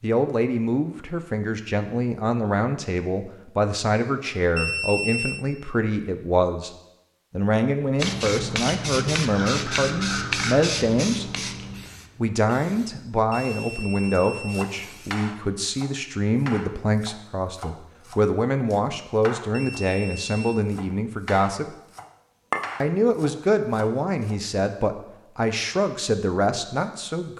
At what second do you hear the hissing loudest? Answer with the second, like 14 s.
10 s.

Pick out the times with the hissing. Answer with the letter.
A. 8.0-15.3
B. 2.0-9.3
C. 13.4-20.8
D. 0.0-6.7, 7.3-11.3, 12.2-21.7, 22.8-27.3
A.